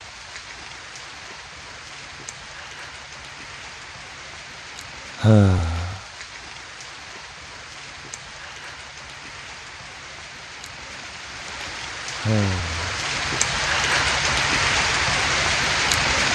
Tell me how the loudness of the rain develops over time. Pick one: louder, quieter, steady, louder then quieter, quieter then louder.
louder.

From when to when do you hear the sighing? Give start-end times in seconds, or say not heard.
5.2-6.0, 12.2-12.8.